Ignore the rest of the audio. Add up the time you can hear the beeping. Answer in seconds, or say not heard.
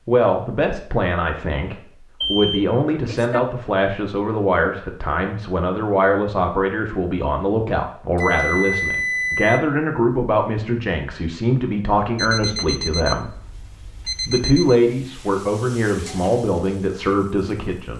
5 s.